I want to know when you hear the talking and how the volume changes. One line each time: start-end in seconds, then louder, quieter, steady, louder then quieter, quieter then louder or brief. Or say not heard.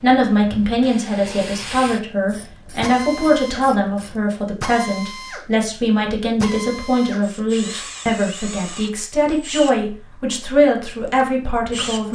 0.0-12.1 steady.